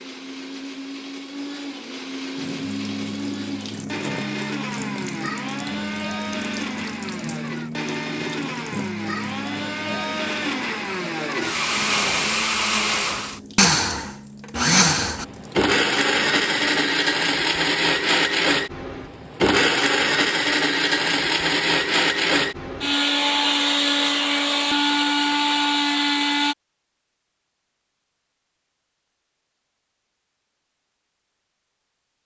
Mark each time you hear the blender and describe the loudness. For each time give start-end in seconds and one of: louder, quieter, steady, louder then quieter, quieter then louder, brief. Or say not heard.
0.0-26.6 louder.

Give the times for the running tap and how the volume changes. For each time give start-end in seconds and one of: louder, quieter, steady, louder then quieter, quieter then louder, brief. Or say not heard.
2.4-16.7 quieter.